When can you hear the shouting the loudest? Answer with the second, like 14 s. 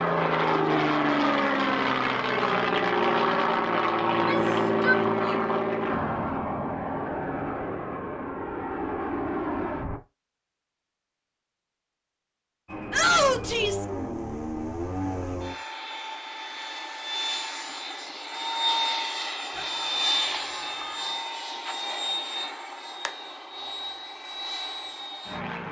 13 s.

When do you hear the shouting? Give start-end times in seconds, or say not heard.
4.1-5.5, 12.9-13.8, 19.5-21.2.